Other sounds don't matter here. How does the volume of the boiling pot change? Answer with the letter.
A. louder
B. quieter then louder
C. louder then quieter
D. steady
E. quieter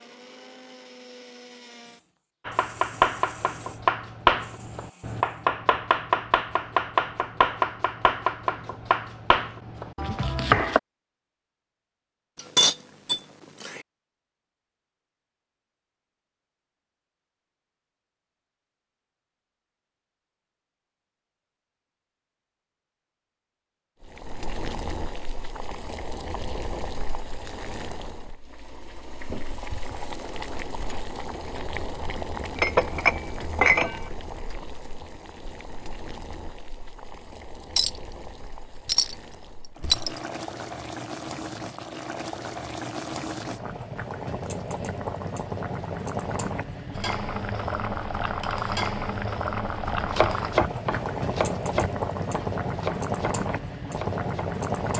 A.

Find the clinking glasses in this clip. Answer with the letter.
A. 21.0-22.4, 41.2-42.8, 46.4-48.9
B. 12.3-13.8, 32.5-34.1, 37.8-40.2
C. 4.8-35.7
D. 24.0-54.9
B.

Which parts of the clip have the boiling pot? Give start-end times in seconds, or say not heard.
24.0-54.9.